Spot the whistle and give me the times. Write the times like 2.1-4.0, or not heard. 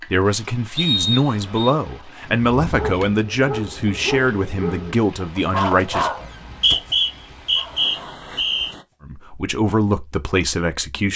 0.8-1.7, 6.2-8.7.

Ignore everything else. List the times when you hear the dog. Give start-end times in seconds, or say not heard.
2.2-8.9.